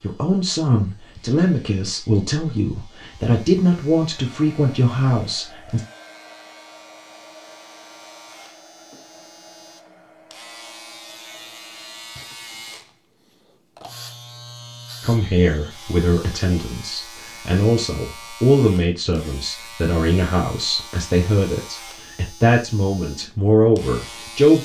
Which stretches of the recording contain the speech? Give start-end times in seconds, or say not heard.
0.0-5.8, 15.0-24.5.